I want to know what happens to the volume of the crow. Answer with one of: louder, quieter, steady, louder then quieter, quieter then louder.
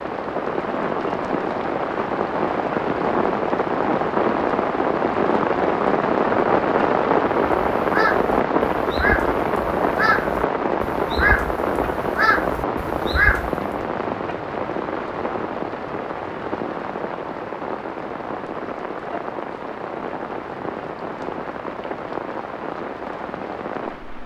quieter then louder.